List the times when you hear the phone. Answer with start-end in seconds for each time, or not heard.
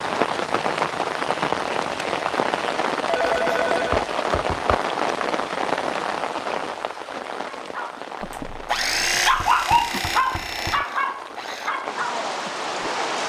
3.0-4.0, 8.2-9.5.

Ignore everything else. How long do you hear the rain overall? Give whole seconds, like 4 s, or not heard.
13 s.